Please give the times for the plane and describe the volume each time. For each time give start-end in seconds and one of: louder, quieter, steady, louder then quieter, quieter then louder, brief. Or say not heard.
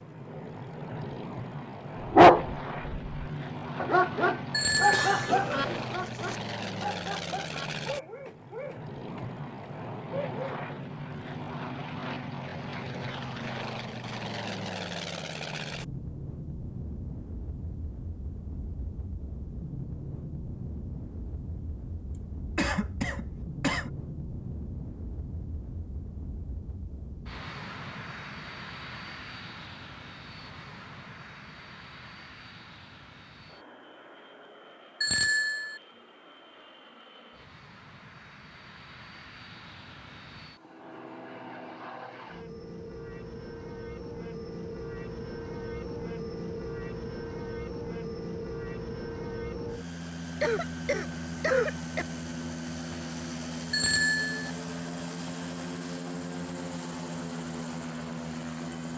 0.0-58.9 quieter then louder.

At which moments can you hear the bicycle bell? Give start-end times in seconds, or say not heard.
4.5-5.3, 35.0-35.8, 53.7-54.5.